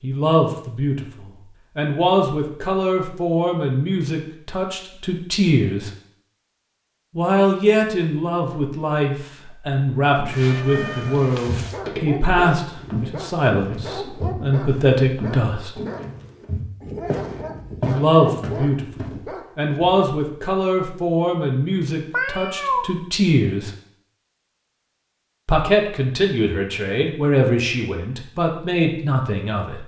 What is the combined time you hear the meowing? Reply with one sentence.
The meowing can be heard for 2 seconds in total.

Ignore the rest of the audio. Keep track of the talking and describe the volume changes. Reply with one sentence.
The loudness of the talking stays about the same.